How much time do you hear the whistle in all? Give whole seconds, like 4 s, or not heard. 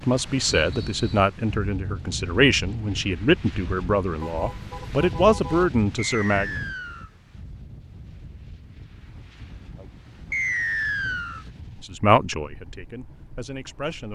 3 s.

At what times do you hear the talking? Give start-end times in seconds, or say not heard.
0.0-6.5, 11.8-14.1.